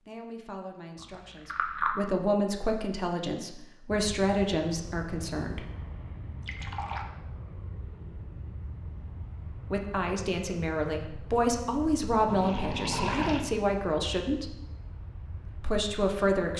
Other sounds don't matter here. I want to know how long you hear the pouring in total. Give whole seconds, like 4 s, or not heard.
3 s.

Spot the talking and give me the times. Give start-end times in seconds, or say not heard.
0.0-5.7, 9.7-14.6, 15.5-16.5.